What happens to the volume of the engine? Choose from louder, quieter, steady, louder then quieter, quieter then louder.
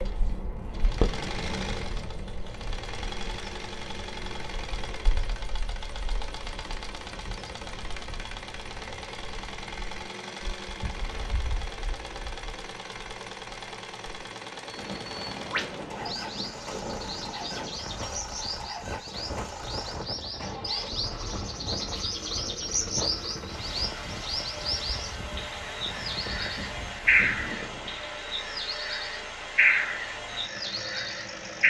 steady.